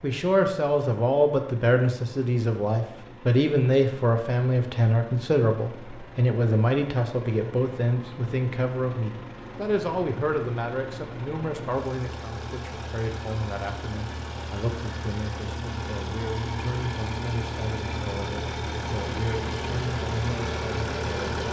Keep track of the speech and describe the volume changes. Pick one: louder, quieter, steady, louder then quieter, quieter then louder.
quieter.